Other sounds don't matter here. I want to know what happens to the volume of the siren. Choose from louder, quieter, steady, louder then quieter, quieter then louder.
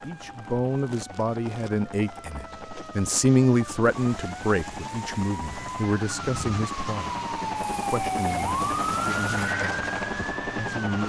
louder.